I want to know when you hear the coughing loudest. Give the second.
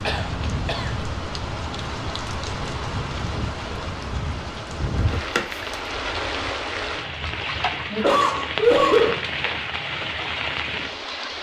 9 s.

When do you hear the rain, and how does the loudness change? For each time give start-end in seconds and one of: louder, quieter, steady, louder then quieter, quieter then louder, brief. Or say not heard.
0.0-11.3 steady.